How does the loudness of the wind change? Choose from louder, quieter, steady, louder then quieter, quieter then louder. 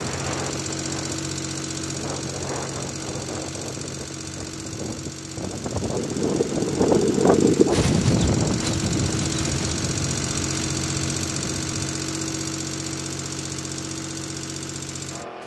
louder then quieter.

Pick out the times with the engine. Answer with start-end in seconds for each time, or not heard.
0.0-15.4.